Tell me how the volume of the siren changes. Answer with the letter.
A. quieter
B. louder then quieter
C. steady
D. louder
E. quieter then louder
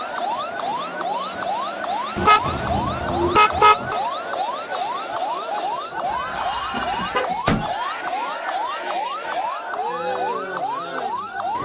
C.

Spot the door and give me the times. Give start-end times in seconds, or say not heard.
6.7-7.7.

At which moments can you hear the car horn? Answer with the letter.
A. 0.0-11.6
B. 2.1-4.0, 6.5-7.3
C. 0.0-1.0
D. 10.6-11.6
B.